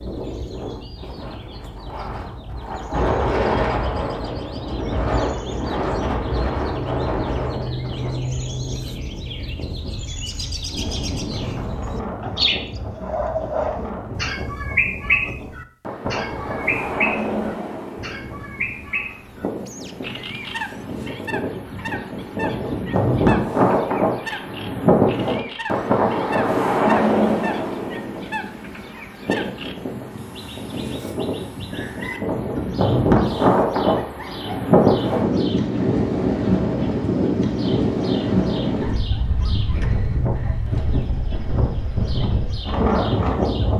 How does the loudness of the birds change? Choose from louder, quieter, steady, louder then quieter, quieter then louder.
louder then quieter.